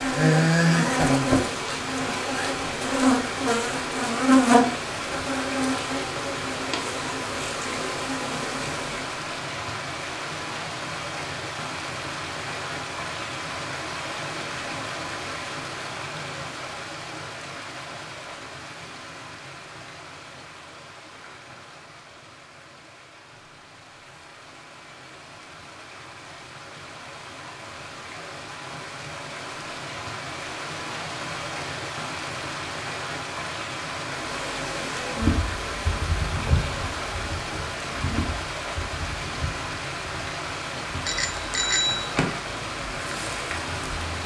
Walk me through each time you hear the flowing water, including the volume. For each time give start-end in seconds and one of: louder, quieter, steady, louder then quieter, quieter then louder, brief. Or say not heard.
0.0-44.2 quieter then louder.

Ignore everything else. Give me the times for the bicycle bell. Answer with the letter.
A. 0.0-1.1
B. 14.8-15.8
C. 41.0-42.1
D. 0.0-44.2
C.